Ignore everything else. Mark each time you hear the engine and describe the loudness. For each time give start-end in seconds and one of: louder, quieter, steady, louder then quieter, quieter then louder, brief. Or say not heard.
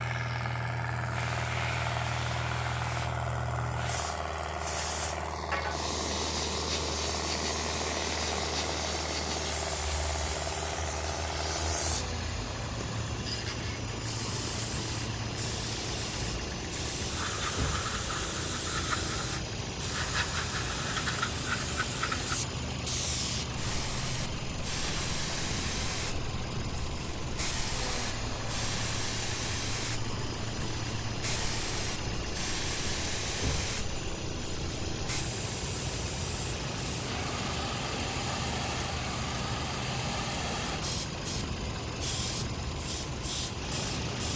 0.0-44.3 steady.